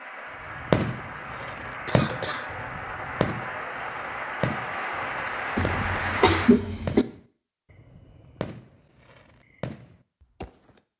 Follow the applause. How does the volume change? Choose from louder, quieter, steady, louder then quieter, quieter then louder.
louder.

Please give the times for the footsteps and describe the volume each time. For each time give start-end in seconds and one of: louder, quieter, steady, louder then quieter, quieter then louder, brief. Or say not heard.
not heard.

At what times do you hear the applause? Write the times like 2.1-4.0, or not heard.
0.0-6.5.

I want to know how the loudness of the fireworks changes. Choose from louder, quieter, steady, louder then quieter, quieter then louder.
quieter.